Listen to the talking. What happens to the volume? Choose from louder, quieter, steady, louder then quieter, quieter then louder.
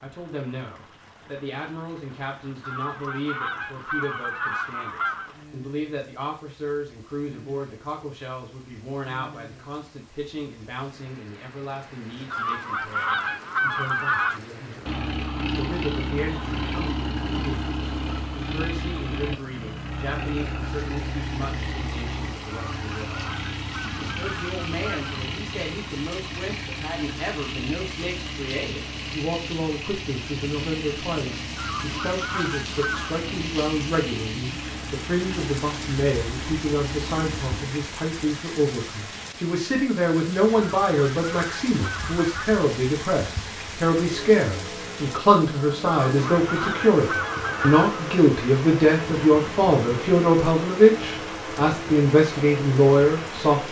louder.